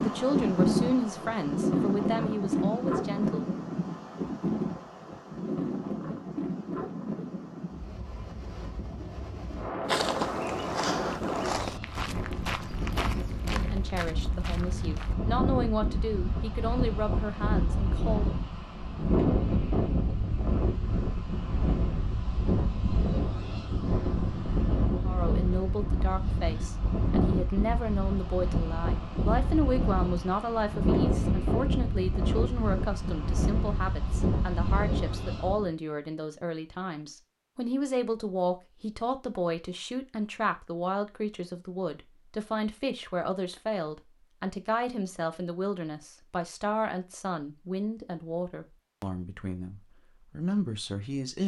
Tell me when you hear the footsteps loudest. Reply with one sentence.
The volume of the footsteps peaks at 10 seconds.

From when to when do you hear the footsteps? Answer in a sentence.
The footsteps can be heard from 9.8 to 15.2 s.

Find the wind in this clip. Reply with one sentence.
You can hear the wind from 0.0 to 35.7 s.